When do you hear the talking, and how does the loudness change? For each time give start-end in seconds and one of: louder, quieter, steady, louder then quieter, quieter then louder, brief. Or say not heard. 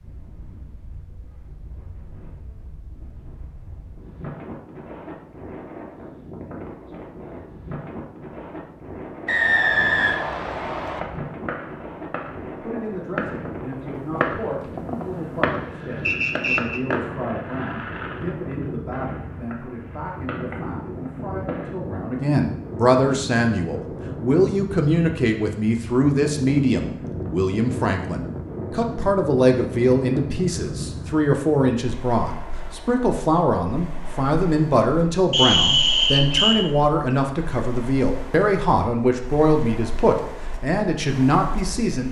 12.6-42.0 louder.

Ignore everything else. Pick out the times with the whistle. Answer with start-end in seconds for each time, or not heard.
9.2-11.0, 16.1-16.8, 35.3-36.5.